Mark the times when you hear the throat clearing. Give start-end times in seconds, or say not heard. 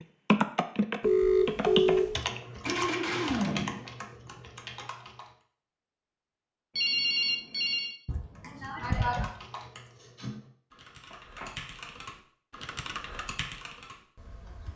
2.6-3.9, 8.1-9.3.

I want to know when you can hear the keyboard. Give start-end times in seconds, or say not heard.
0.2-5.3, 8.3-14.7.